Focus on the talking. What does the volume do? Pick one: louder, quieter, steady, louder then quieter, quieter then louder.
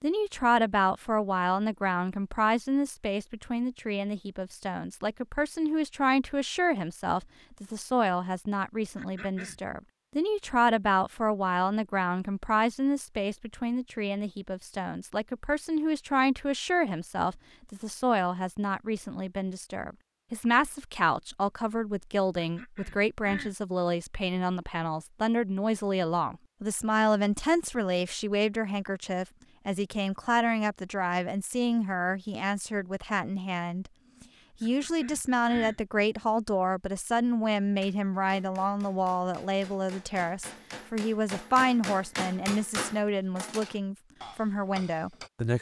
steady.